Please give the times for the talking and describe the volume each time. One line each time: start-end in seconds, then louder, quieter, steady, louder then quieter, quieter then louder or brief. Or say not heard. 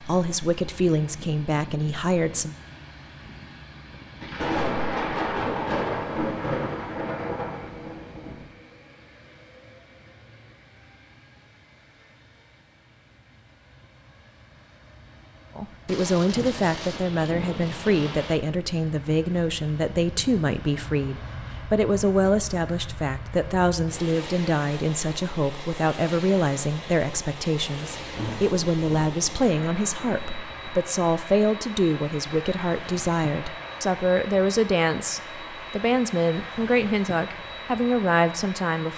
0.0-2.5 brief
15.6-38.9 steady.